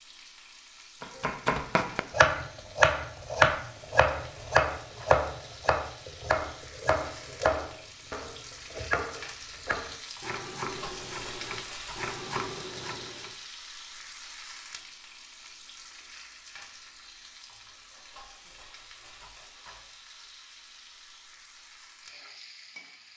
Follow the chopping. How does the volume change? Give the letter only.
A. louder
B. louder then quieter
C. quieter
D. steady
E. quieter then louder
C.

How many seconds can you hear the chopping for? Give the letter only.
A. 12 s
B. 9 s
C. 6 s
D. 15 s
A.